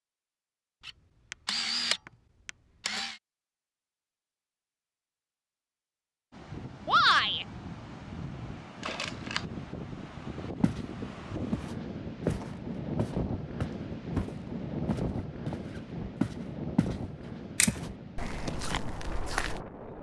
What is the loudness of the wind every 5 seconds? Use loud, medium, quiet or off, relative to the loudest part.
off, medium, loud, loud.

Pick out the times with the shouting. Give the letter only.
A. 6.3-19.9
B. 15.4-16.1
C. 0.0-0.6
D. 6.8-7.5
D.